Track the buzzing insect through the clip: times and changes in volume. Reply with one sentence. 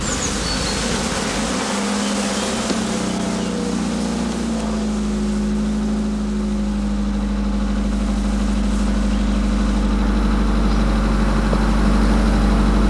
The buzzing insect can be heard from 0.0 to 12.8 s, getting quieter then louder.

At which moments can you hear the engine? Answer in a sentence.
The engine can be heard from 0.0 to 12.8 s.